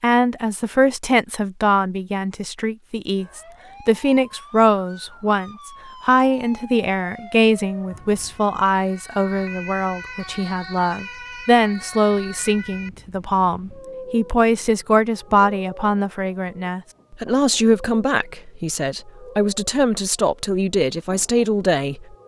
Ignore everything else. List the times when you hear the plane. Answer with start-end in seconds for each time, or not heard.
not heard.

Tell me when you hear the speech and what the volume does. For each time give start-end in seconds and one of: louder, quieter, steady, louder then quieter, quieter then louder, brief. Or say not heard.
0.0-22.1 steady.